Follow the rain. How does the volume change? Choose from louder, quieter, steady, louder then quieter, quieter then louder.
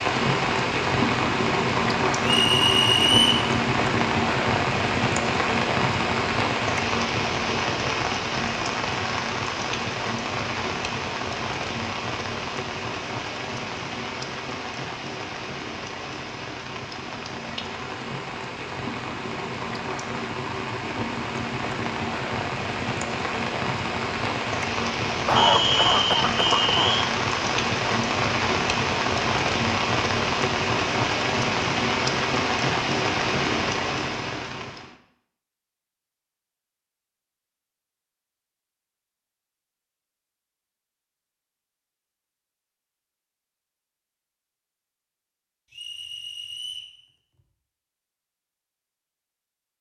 quieter then louder.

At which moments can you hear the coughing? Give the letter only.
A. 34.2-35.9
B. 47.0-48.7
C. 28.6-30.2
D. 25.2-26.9
D.